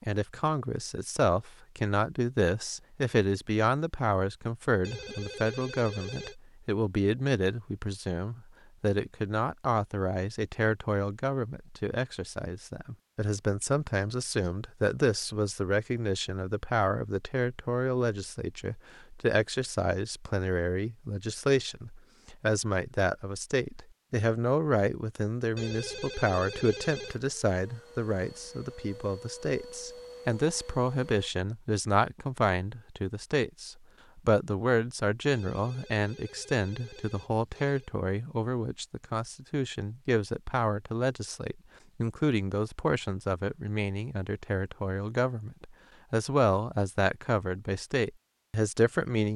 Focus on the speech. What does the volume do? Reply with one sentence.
The volume of the speech stays about the same.